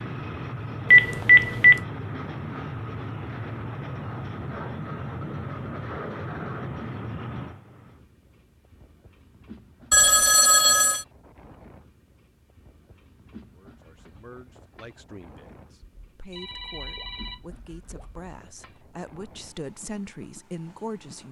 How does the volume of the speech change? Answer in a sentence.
The volume of the speech goes up.